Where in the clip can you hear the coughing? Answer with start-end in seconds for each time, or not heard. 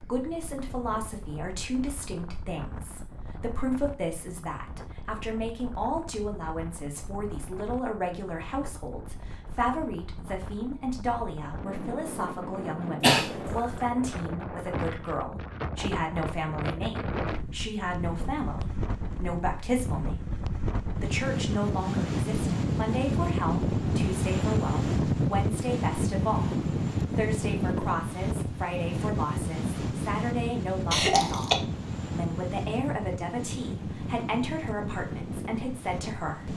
13.0-13.7, 30.9-31.6.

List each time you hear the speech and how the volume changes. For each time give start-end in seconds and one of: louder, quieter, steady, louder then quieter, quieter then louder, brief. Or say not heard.
0.0-36.5 steady.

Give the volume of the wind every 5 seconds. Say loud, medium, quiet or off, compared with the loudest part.
quiet, quiet, medium, medium, loud, loud, medium, medium.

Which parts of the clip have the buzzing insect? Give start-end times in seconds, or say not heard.
not heard.